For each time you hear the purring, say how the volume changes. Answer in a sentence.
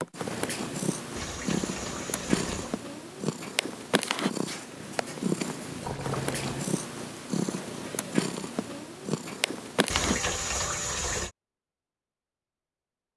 You can hear the purring from 0.0 to 10.2 s, at a steady volume.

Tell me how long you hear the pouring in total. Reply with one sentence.
The pouring can be heard for 4 seconds in total.